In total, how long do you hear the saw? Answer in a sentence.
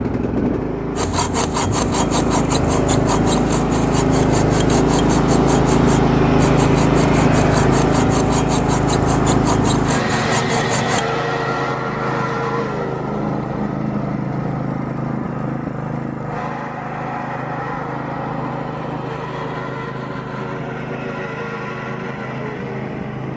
You can hear the saw for 10 seconds altogether.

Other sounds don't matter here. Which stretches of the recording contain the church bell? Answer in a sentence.
You can't hear the church bell here.